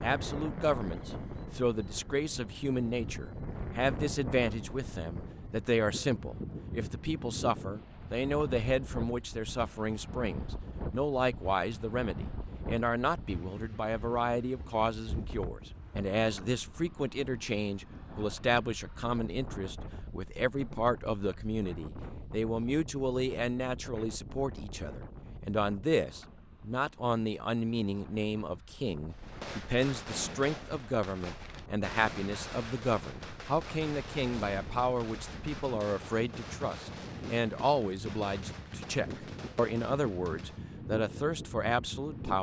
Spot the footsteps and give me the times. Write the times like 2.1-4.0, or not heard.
not heard.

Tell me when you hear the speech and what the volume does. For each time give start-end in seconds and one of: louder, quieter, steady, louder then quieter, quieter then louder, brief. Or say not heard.
0.0-42.3 steady.